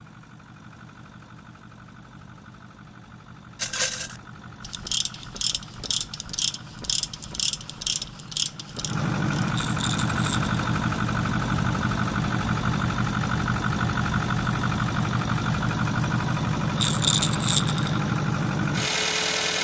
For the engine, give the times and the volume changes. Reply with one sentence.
The engine can be heard from 0.0 to 19.5 s, getting louder.